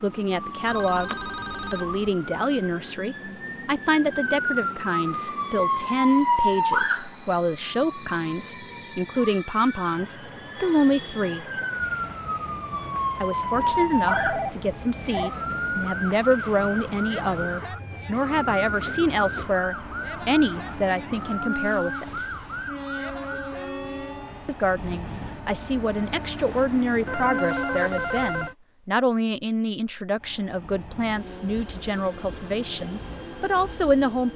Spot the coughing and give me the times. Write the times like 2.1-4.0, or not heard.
not heard.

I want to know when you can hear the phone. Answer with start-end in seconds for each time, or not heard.
0.7-2.1, 13.6-15.3, 27.1-28.6.